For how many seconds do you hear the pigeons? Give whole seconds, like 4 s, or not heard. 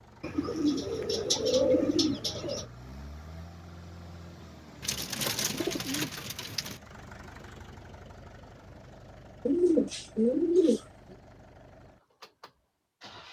6 s.